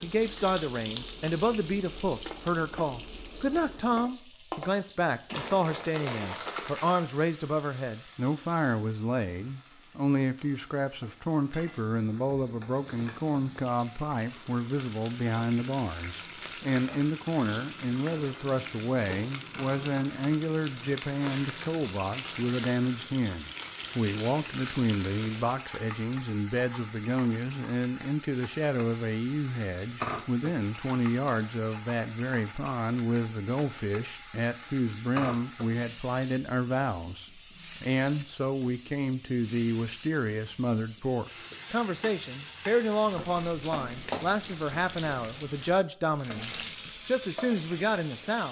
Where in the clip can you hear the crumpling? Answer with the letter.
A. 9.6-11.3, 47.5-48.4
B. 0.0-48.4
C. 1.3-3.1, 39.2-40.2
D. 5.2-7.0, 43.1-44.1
D.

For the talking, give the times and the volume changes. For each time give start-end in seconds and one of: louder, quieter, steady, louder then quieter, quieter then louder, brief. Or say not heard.
0.0-48.4 steady.